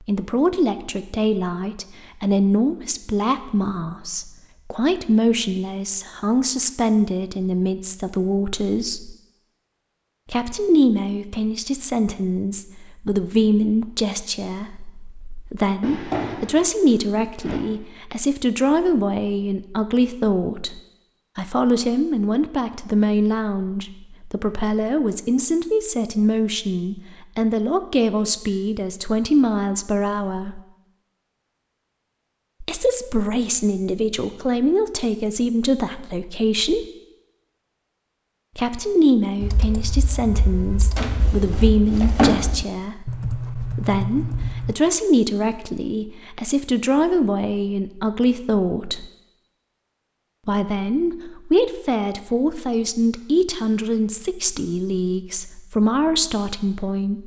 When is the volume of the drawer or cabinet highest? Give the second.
42 s.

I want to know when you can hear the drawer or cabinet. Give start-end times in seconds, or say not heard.
15.8-17.6, 41.0-42.6.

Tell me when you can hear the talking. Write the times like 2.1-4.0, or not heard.
0.1-9.2, 10.3-30.6, 32.6-36.9, 38.5-49.0, 50.5-57.2.